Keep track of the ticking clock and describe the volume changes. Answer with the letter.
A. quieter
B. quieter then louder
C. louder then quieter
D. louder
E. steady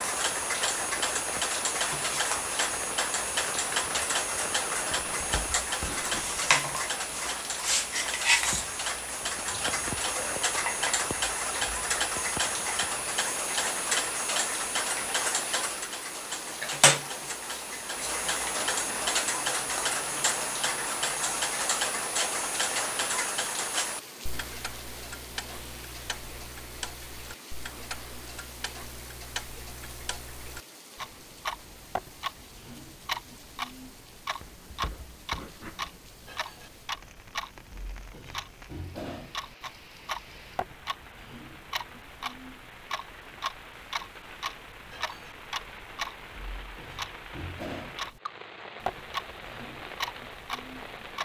A.